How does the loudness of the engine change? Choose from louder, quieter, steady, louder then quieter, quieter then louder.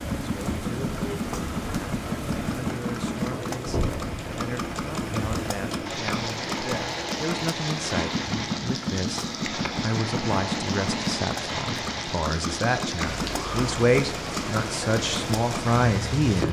steady.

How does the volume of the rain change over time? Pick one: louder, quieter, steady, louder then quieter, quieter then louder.
steady.